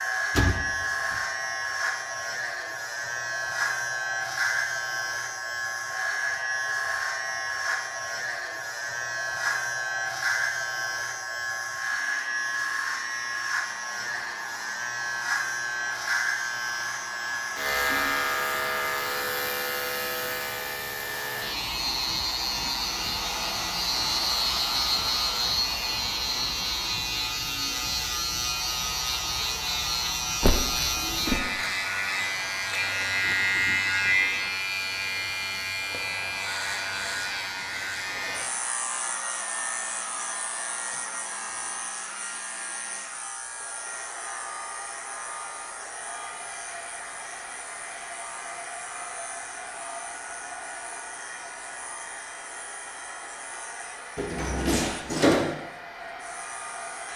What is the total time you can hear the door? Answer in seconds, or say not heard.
3 s.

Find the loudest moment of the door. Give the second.
55 s.